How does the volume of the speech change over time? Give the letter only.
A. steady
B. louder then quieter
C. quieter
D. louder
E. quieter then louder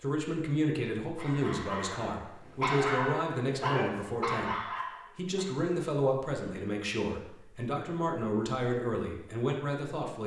A.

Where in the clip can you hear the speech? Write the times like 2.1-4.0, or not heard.
0.0-10.2.